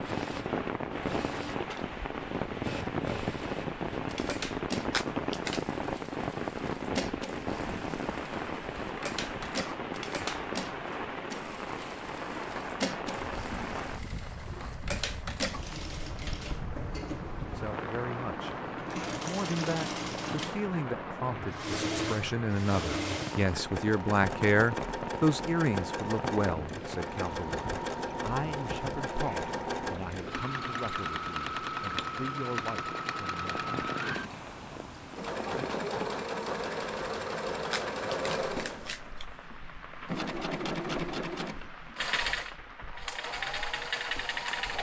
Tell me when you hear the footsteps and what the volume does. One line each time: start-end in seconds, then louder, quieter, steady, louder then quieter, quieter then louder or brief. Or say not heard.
not heard.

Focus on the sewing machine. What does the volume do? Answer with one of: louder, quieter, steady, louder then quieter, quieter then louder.
louder.